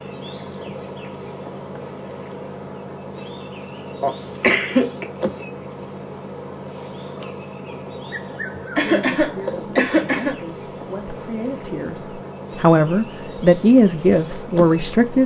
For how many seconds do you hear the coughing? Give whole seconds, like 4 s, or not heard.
3 s.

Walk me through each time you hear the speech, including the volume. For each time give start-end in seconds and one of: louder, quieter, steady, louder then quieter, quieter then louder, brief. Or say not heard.
8.8-15.2 louder.